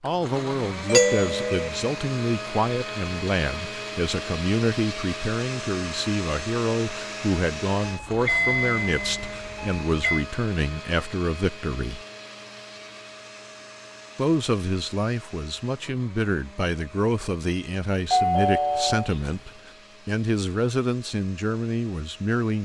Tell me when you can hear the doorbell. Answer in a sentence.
You can hear the doorbell from 0.9 to 1.7 s, from 7.8 to 10.2 s and from 18.1 to 19.4 s.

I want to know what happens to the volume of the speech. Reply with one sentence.
The loudness of the speech stays about the same.